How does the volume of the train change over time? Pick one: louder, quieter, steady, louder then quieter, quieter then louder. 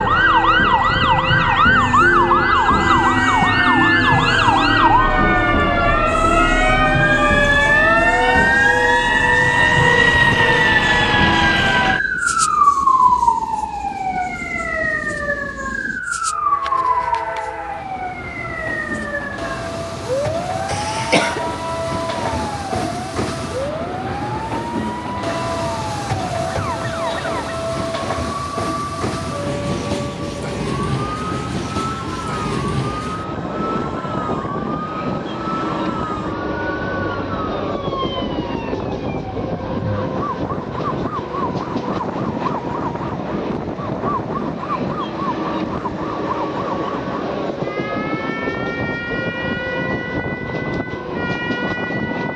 louder.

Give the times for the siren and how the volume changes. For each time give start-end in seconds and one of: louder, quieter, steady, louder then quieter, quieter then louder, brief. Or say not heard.
0.0-52.3 quieter.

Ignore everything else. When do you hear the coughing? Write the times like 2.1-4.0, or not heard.
20.6-21.4.